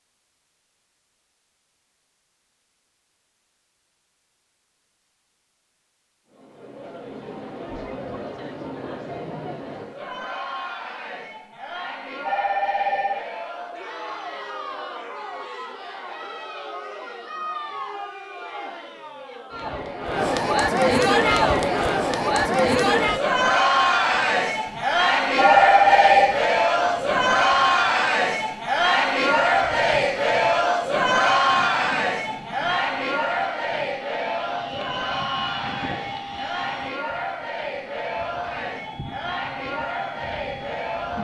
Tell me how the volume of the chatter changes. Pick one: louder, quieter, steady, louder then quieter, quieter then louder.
louder then quieter.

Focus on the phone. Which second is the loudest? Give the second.
26 s.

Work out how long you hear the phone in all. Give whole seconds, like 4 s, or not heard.
2 s.